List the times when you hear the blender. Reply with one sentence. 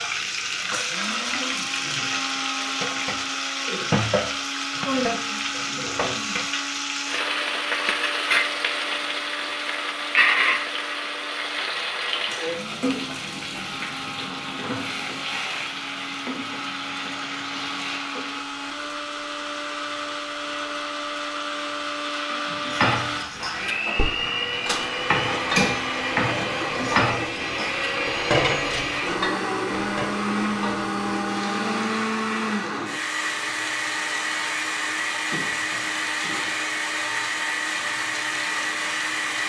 The blender can be heard from 0.0 to 39.4 s.